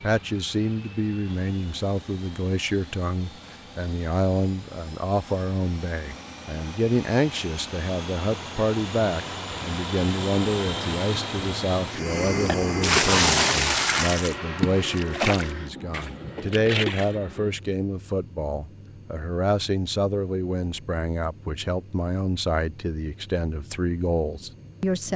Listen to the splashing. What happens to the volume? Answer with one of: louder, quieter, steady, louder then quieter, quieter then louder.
quieter.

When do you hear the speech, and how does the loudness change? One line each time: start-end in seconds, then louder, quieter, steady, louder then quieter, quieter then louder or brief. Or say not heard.
0.0-25.1 steady.